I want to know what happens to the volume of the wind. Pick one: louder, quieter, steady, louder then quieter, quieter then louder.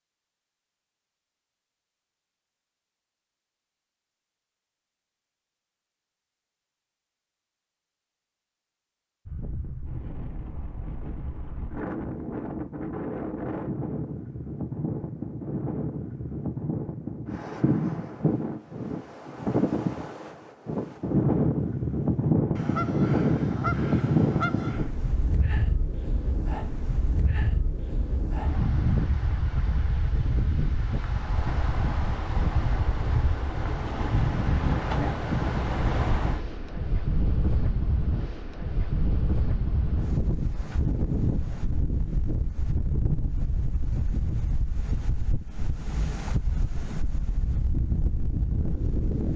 louder then quieter.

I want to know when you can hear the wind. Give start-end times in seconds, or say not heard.
9.2-49.3.